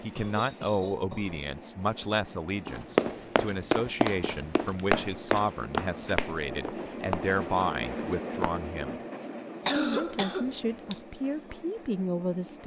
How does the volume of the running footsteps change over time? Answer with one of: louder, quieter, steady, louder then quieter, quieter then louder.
quieter.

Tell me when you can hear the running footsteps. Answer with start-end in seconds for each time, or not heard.
2.6-8.6.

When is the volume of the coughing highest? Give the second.
10 s.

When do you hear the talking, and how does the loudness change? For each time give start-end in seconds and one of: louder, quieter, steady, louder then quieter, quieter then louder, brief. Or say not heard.
0.0-9.0 steady
9.8-12.6 brief.